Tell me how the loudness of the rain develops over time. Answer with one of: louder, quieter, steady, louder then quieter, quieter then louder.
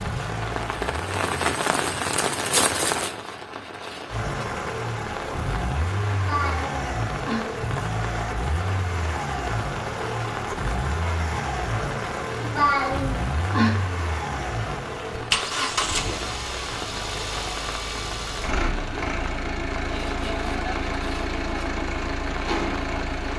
quieter.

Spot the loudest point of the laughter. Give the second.
13 s.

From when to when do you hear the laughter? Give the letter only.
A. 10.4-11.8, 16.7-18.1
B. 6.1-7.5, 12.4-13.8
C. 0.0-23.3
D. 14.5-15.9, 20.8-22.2
B.